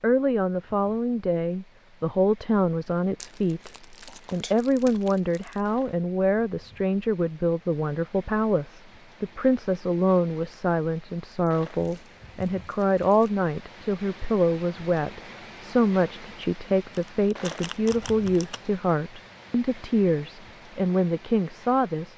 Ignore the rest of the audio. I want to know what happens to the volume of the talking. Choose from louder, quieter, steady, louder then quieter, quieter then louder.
steady.